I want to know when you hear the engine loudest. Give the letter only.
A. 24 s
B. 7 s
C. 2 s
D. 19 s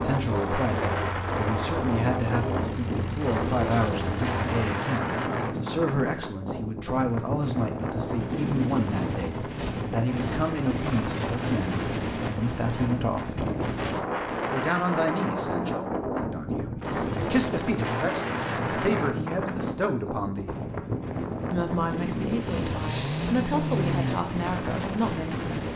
A.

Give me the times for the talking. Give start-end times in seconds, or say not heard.
0.0-13.3, 14.5-20.6, 21.5-25.7.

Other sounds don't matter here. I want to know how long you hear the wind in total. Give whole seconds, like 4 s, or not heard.
26 s.